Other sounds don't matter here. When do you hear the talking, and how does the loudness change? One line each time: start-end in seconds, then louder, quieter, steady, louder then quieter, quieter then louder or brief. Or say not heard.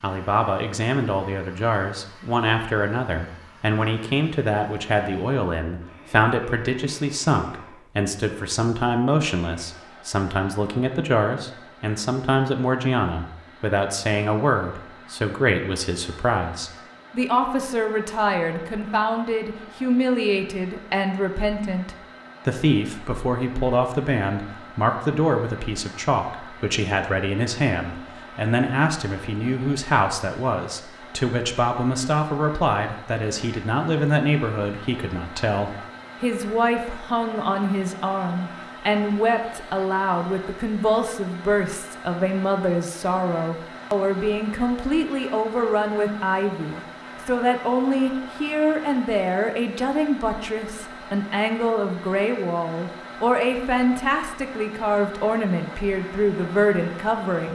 0.0-57.4 steady.